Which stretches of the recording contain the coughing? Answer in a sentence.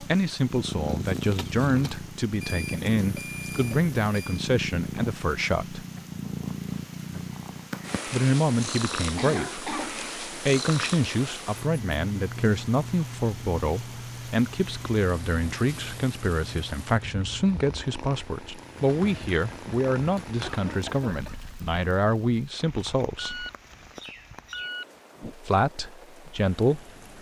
You can hear the coughing from 1.4 to 2.0 s, from 9.2 to 10.0 s and from 20.4 to 21.4 s.